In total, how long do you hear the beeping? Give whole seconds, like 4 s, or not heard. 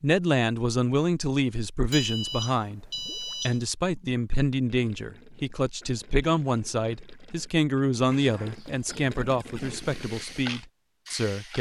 3 s.